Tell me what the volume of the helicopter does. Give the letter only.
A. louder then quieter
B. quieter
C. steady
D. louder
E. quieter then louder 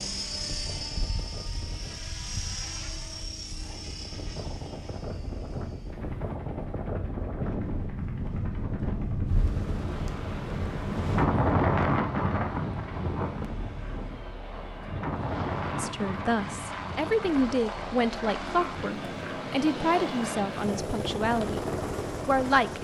E.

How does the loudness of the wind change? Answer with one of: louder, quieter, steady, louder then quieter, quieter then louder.
louder then quieter.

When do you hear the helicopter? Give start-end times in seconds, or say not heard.
0.0-22.7.